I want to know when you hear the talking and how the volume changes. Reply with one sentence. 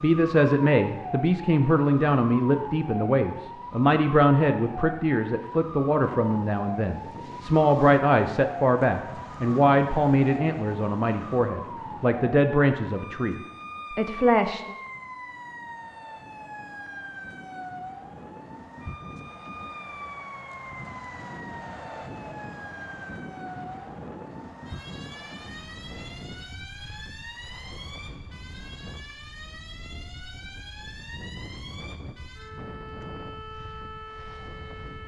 You can hear the talking from 0.0 to 14.8 s, at a steady volume.